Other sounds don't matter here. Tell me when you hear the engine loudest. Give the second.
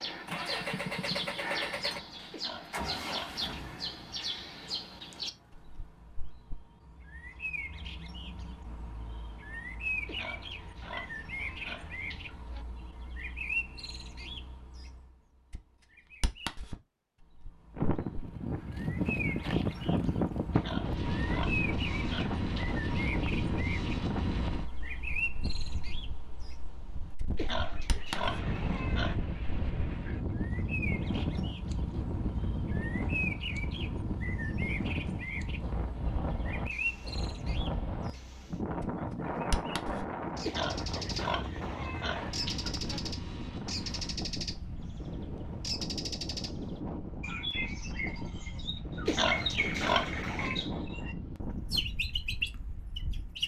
1 s.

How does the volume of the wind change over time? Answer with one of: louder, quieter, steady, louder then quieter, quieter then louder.
quieter.